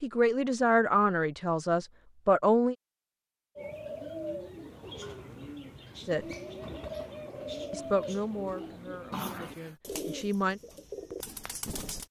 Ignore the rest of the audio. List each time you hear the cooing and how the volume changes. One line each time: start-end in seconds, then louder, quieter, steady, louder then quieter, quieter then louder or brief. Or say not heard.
3.5-12.0 steady.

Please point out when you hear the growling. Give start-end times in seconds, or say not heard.
9.1-9.8.